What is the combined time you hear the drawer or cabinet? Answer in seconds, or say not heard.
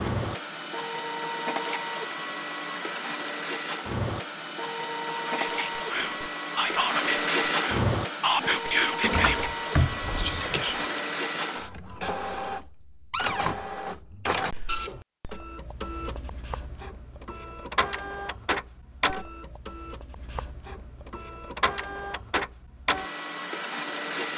2 s.